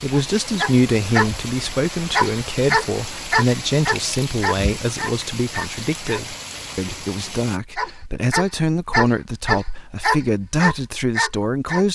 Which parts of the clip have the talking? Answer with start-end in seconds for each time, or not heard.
0.0-11.9.